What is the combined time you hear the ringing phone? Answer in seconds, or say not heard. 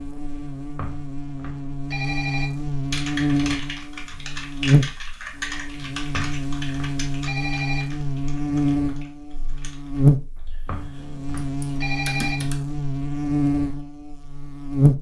6 s.